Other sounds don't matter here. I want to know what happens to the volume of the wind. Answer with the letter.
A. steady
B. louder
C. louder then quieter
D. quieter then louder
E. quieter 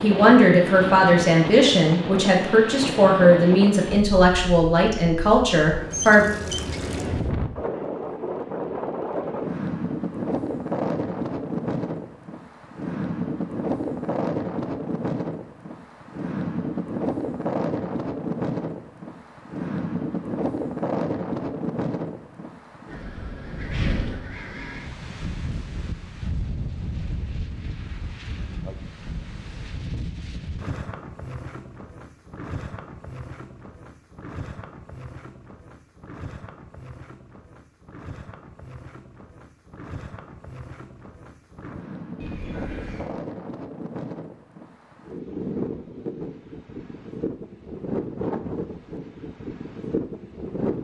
D.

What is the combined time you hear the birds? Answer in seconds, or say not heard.
not heard.